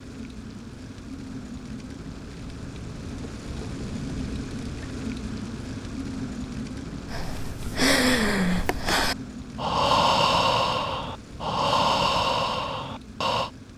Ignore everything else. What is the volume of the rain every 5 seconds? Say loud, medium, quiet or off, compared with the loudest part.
loud, loud, medium.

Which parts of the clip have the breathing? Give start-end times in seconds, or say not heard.
7.0-13.5.